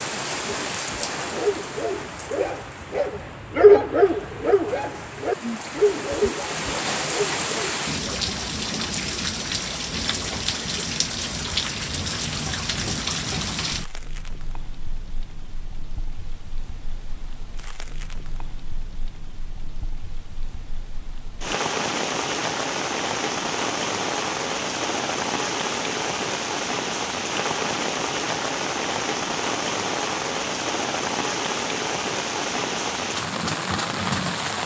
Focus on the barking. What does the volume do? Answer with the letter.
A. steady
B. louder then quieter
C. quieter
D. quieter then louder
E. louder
B.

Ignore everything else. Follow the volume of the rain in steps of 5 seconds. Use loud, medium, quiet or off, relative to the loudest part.
medium, loud, loud, quiet, loud, loud, loud.